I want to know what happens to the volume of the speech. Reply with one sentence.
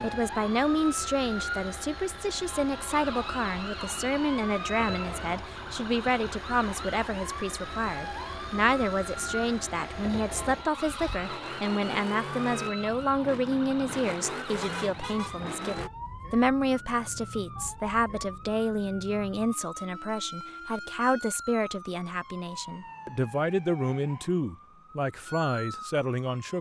The volume of the speech stays about the same.